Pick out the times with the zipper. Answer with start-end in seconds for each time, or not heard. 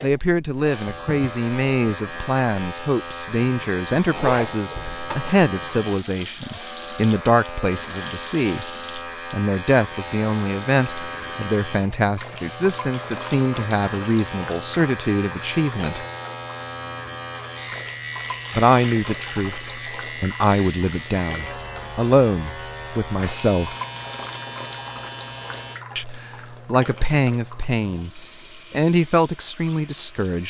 4.1-4.5.